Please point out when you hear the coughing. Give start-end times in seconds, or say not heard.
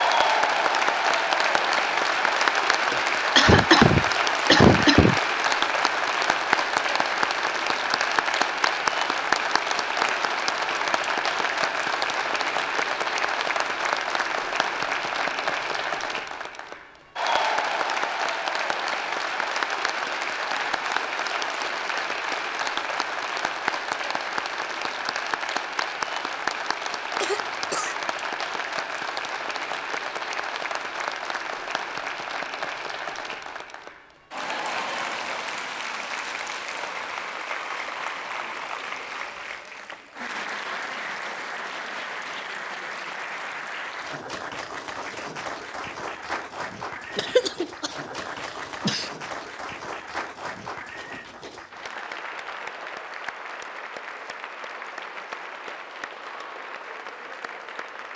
2.9-5.2, 27.2-27.9, 47.1-49.1.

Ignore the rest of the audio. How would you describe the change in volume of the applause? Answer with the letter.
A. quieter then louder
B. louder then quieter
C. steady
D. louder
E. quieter
E.